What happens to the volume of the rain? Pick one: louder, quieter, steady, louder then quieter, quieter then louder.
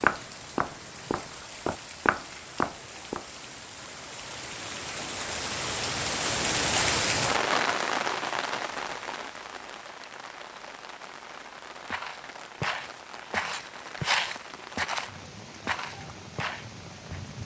louder then quieter.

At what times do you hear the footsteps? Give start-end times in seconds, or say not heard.
0.0-3.2, 11.9-17.2.